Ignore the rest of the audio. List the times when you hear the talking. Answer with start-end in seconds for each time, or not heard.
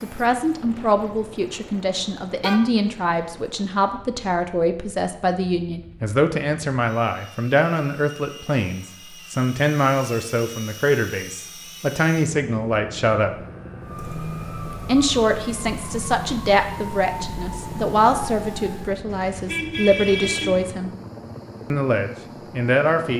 0.0-13.3, 14.8-20.9, 21.7-23.1.